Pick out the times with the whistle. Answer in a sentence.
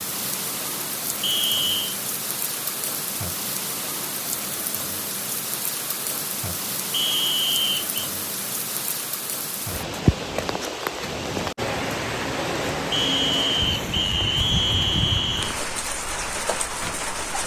You can hear the whistle from 1.2 to 1.9 s, from 6.9 to 7.8 s and from 12.9 to 15.6 s.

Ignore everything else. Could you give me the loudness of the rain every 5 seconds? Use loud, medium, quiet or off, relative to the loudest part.
medium, medium, loud, loud.